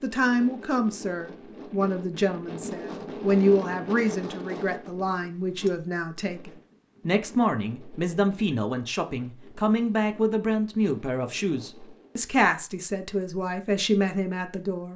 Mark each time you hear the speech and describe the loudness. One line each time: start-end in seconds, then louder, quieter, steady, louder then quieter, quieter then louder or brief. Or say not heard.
0.0-14.9 steady.